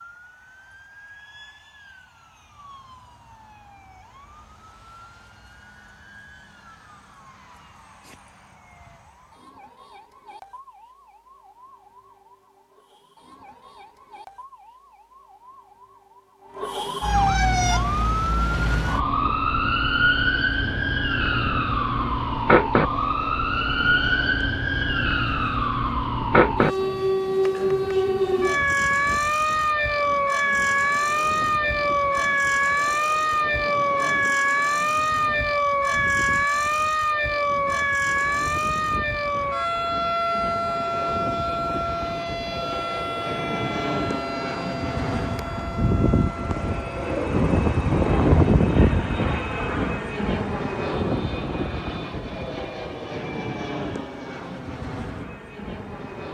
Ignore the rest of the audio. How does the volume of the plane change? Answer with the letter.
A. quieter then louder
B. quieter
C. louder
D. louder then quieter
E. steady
C.